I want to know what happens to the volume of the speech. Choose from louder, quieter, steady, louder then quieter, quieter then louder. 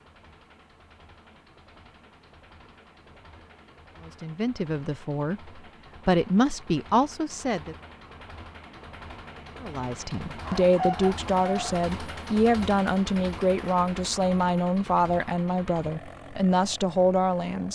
steady.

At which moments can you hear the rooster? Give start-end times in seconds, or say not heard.
10.4-11.8.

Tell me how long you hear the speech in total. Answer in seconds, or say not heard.
12 s.